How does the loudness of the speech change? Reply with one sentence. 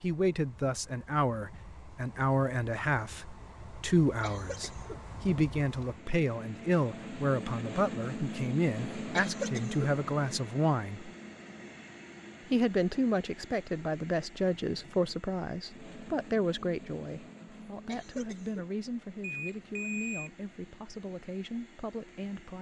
The loudness of the speech goes down.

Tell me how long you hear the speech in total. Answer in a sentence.
The speech can be heard for 21 seconds in total.